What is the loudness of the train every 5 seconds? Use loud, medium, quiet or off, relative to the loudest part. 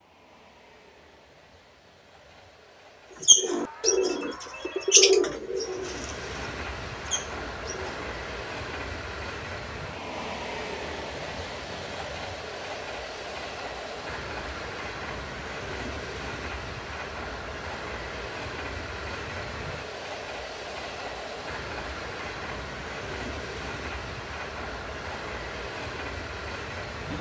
quiet, loud, loud, loud, loud, loud.